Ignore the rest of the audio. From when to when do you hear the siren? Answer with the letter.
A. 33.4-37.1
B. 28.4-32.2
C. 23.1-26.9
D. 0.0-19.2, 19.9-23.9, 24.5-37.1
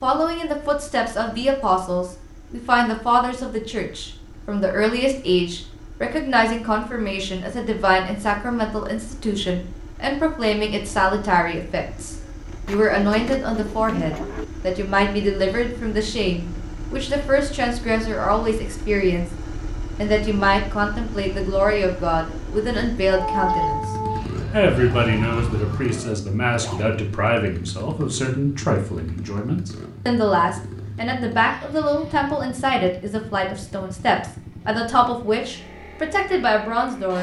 C.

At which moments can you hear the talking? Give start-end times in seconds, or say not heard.
0.0-19.2, 19.9-23.9, 24.5-37.1.